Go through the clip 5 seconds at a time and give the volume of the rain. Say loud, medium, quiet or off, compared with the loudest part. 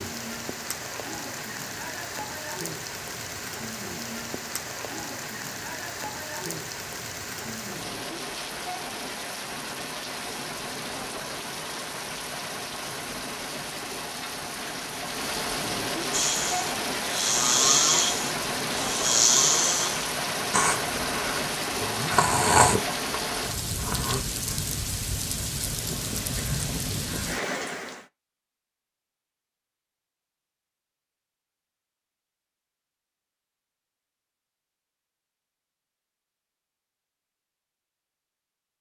medium, medium, medium, loud, loud, loud, off, off.